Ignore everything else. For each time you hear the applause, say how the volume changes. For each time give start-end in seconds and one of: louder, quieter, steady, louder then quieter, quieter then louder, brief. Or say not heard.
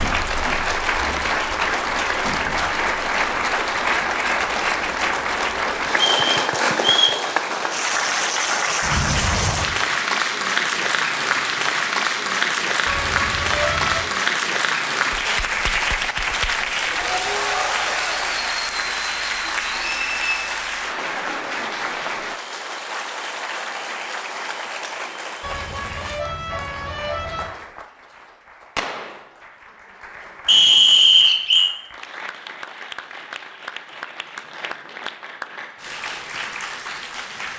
0.0-37.5 quieter.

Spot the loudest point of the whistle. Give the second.
31 s.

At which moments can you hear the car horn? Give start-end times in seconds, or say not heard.
8.8-9.8, 12.8-14.1, 25.4-27.4.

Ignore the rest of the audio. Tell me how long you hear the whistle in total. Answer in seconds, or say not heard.
3 s.